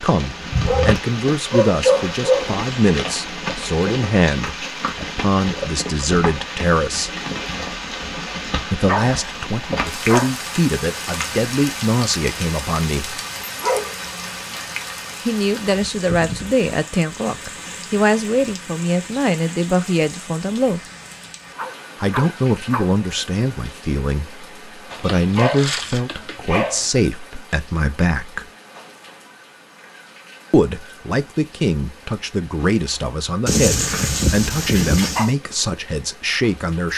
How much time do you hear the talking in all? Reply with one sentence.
The talking can be heard for 30 seconds in total.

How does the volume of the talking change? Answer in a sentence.
The volume of the talking stays about the same.